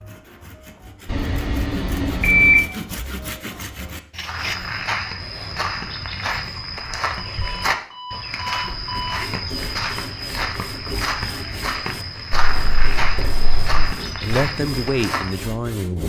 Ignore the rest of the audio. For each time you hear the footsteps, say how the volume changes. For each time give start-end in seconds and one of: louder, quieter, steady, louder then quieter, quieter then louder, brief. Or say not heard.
4.2-15.5 steady.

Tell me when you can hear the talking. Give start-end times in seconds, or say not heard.
13.7-16.0.